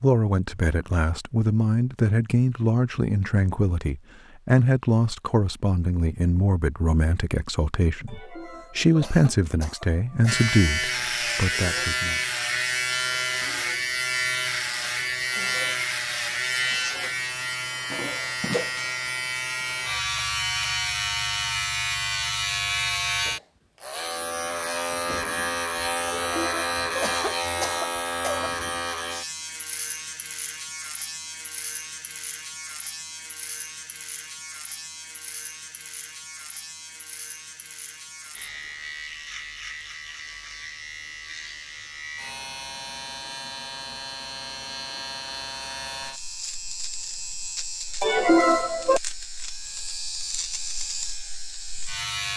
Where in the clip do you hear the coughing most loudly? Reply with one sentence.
The volume of the coughing peaks at 48 seconds.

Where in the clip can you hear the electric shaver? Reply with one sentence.
The electric shaver can be heard from 10.2 to 52.3 s.